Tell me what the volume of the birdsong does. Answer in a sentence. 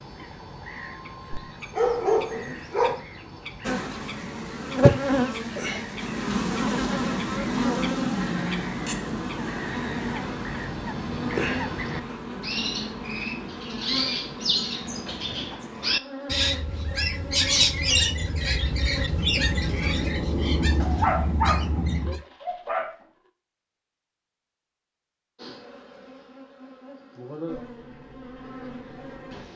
The loudness of the birdsong goes up.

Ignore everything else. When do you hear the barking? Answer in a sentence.
You can hear the barking from 1.3 to 3.0 s and from 20.8 to 22.9 s.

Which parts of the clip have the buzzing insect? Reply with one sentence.
The buzzing insect can be heard from 3.6 to 20.1 s and from 25.4 to 29.5 s.